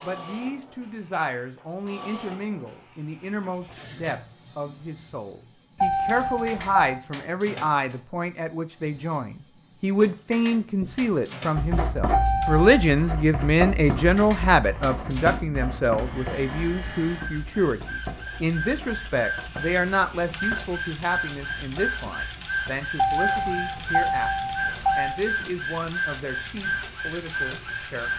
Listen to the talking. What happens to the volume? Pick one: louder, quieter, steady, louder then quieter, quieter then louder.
louder then quieter.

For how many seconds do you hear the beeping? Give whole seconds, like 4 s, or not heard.
4 s.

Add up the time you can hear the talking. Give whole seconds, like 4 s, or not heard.
28 s.